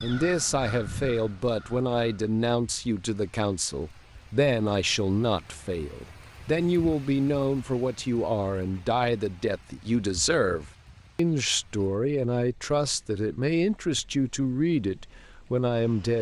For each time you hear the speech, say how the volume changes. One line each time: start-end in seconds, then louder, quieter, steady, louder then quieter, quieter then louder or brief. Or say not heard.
0.0-16.1 steady.